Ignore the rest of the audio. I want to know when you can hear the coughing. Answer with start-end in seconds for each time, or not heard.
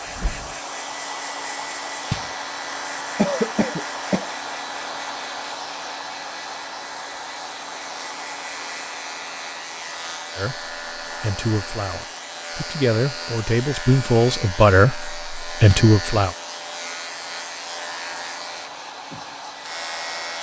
3.1-4.2.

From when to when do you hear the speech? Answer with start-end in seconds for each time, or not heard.
10.3-16.4.